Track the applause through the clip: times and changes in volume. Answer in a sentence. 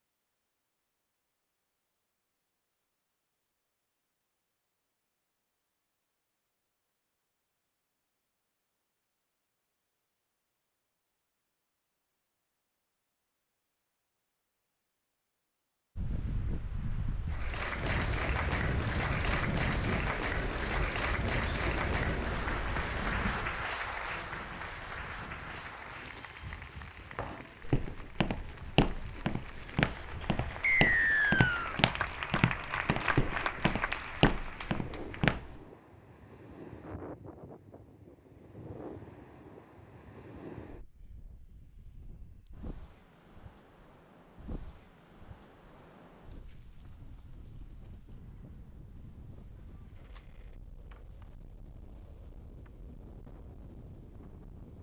You can hear the applause from 17.2 to 35.3 s, getting quieter then louder.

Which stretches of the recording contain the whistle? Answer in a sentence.
You can hear the whistle from 30.6 to 31.8 s.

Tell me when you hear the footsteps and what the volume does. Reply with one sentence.
The footsteps can be heard from 27.1 to 35.6 s, at a steady volume.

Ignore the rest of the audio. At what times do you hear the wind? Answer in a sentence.
You can hear the wind from 15.9 to 54.7 s.